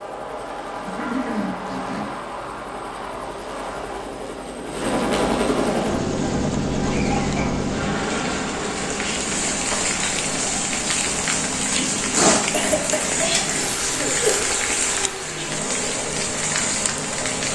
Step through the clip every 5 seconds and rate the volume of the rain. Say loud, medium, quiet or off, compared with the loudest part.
off, medium, loud, loud.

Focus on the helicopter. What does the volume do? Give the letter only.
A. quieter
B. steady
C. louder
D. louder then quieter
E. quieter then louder
D.